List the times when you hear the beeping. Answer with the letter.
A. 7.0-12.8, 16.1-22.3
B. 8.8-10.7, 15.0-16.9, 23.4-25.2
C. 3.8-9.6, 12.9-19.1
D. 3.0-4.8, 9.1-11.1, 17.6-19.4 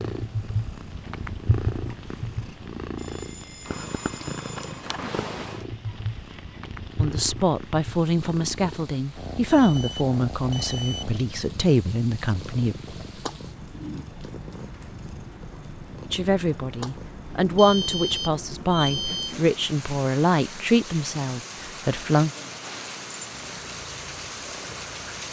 D.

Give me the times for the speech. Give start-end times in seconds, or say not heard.
7.0-12.8, 16.1-22.3.